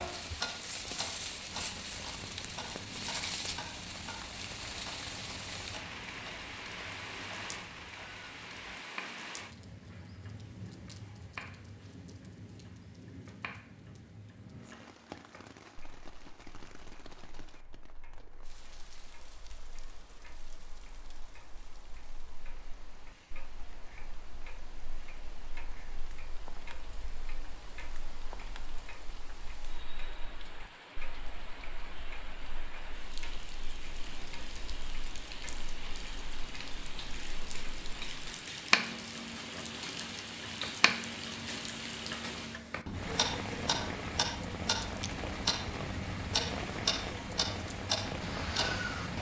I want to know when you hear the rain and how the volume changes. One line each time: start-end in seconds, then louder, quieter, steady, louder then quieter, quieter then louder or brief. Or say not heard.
0.0-49.1 quieter then louder.